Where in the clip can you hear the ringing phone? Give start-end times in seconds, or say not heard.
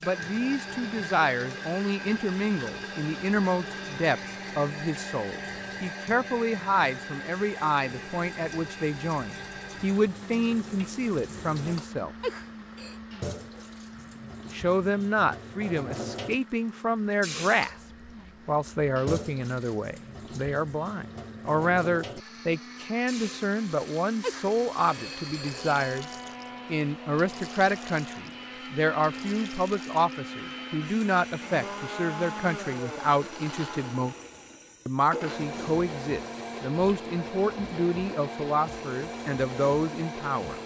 12.2-12.9, 24.2-25.9.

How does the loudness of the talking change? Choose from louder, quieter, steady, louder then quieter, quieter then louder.
steady.